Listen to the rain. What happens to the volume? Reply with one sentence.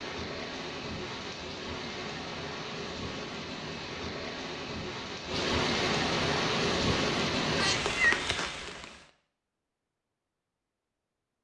The loudness of the rain goes up.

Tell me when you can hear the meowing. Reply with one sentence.
The meowing can be heard from 7.5 to 8.5 s.